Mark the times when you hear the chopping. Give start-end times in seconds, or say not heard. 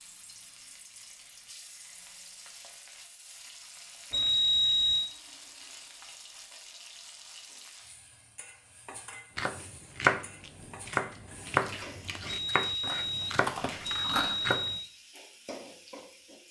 9.3-14.8.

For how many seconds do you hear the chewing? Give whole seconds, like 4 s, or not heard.
3 s.